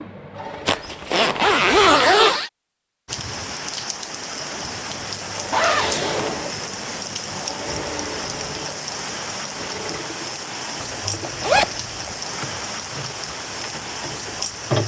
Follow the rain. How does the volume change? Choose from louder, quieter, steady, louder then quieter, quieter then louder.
steady.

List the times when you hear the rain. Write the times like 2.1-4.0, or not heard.
3.0-14.8.